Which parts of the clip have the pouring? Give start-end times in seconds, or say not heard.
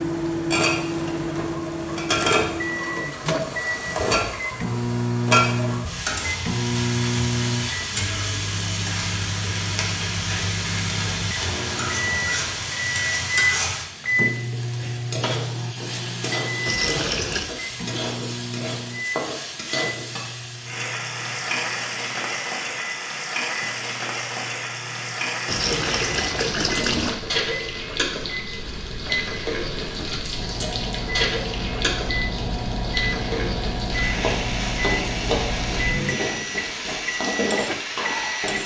16.6-17.6, 25.4-27.2.